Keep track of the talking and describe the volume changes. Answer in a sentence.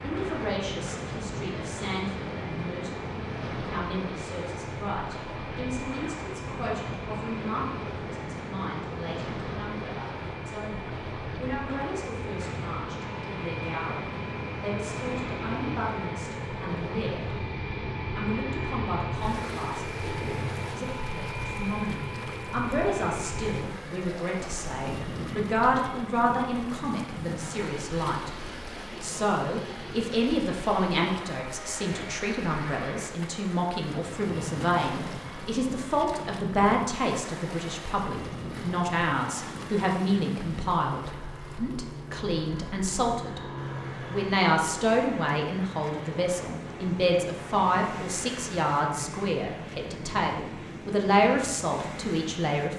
The volume of the talking goes up.